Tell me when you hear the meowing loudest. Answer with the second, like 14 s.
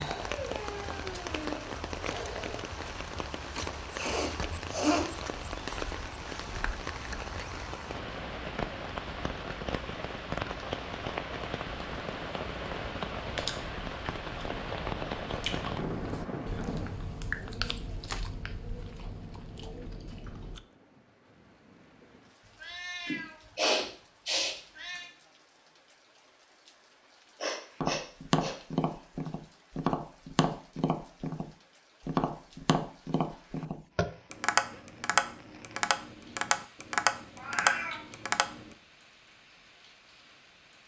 38 s.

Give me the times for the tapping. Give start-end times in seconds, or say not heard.
27.8-38.8.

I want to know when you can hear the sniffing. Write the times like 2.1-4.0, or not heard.
4.0-5.0, 23.1-25.0, 27.4-28.6.